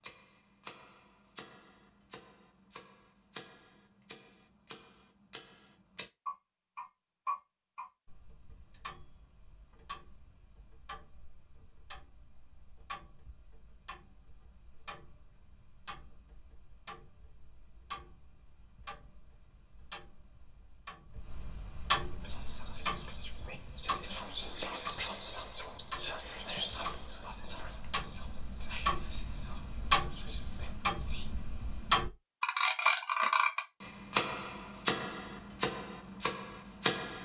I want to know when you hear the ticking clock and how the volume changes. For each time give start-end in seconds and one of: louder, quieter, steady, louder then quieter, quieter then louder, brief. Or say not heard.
0.0-37.2 quieter then louder.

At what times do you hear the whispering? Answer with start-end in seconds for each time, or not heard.
22.2-31.3.